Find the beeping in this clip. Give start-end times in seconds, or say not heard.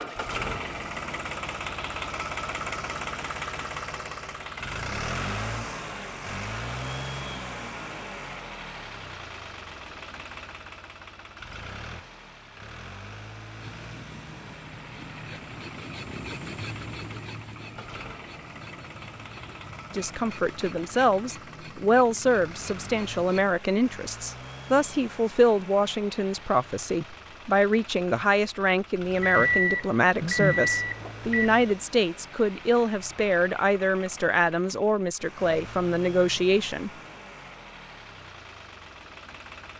29.2-31.6.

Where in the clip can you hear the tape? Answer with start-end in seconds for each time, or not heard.
not heard.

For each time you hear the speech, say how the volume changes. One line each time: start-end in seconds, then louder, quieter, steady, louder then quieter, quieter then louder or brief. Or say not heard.
19.9-36.9 steady.